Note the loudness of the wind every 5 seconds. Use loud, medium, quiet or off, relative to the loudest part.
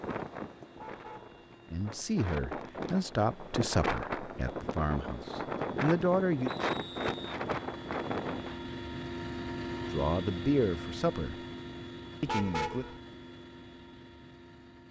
loud, loud, off.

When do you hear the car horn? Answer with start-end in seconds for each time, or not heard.
0.8-1.4, 12.2-13.0.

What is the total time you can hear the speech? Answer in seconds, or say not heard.
7 s.